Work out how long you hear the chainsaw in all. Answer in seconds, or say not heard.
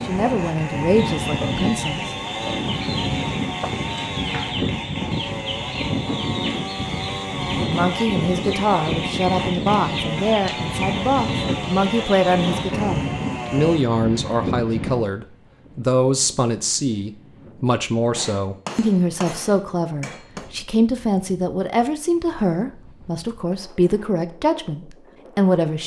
14 s.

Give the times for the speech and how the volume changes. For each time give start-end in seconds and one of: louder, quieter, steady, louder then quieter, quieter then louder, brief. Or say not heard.
0.0-2.0 brief
7.7-25.8 steady.